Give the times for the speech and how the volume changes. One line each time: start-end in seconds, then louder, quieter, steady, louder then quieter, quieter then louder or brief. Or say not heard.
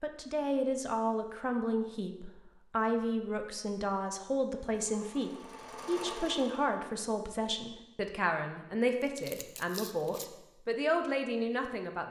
0.0-12.0 steady.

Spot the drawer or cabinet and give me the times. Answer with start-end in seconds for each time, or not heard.
not heard.